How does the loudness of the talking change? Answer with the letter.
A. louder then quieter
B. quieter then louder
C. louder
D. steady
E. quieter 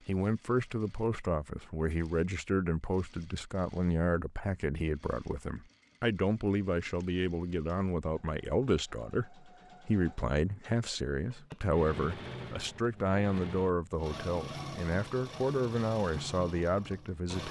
D.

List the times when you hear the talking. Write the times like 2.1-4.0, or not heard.
0.1-17.4.